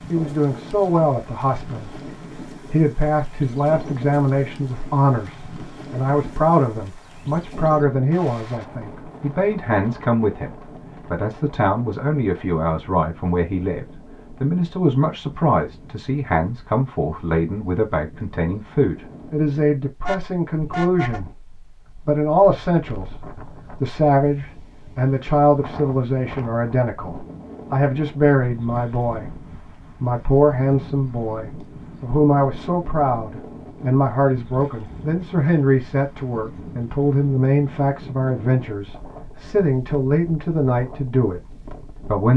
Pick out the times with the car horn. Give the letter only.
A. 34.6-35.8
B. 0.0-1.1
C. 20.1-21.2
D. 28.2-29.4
C.